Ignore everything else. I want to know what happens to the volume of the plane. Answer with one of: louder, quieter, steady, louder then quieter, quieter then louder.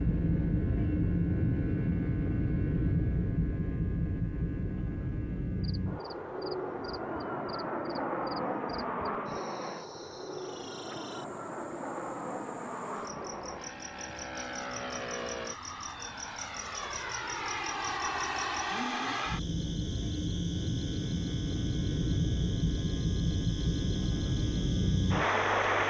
quieter then louder.